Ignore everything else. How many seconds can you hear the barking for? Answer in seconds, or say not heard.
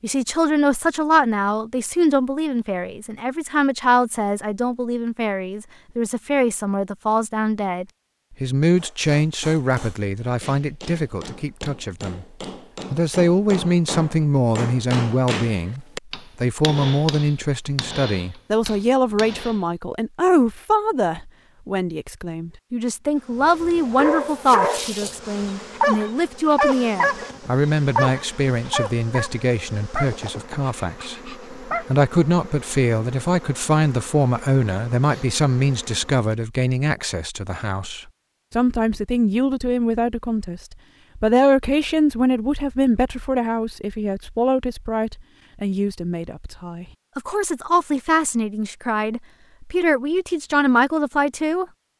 7 s.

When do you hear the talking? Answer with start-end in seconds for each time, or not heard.
0.0-12.2, 12.9-51.6.